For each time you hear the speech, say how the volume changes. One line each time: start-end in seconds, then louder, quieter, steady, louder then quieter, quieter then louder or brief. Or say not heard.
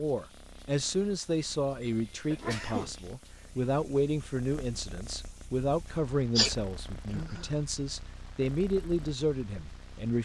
0.0-10.2 steady.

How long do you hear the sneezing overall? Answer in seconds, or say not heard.
3 s.